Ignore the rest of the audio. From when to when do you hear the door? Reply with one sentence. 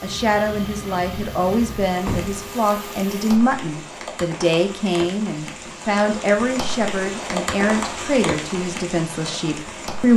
The door can be heard from 2.0 to 2.5 s.